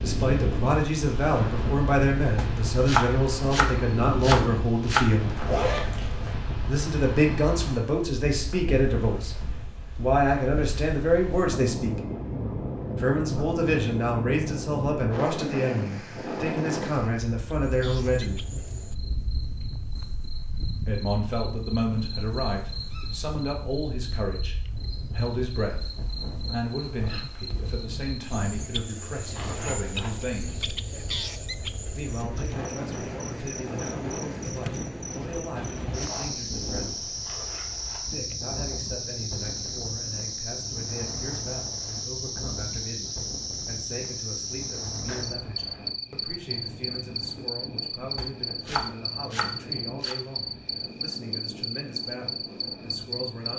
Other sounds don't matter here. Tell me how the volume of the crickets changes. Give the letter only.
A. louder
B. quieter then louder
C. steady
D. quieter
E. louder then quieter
A.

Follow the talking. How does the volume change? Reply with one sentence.
The volume of the talking goes down.